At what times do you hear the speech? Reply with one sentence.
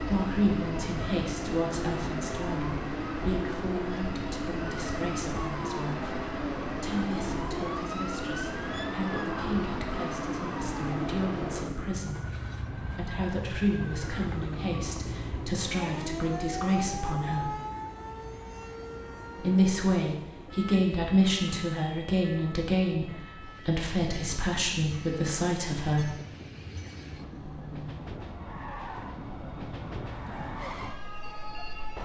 The speech can be heard from 0.0 to 17.6 s and from 19.4 to 26.1 s.